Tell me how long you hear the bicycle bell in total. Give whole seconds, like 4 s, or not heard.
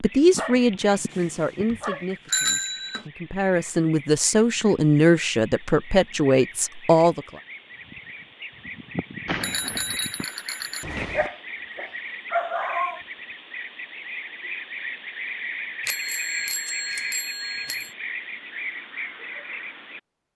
6 s.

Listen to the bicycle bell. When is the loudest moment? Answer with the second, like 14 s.
2 s.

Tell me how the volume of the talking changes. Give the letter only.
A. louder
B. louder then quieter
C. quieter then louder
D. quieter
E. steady
C.